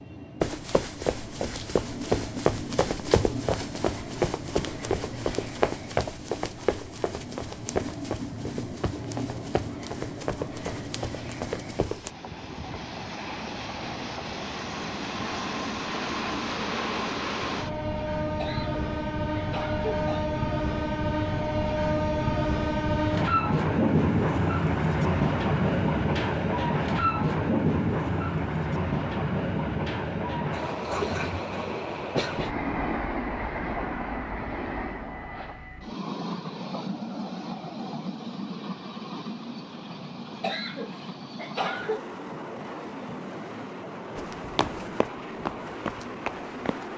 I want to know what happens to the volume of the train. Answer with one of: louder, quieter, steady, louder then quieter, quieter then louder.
louder then quieter.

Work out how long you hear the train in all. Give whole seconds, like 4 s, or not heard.
47 s.